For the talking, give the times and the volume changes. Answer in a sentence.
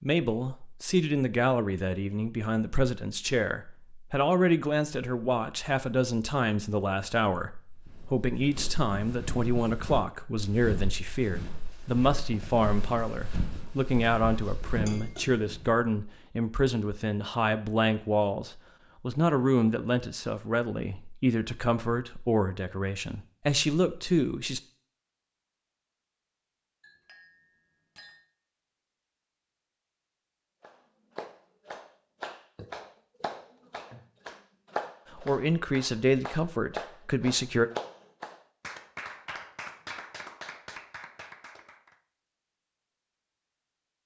You can hear the talking from 0.0 to 24.6 s, at a steady volume; and briefly from 35.1 to 37.7 s.